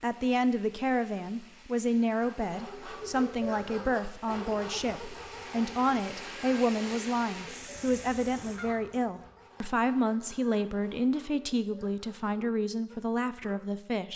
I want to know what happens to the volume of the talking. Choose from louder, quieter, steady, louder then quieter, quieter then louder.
steady.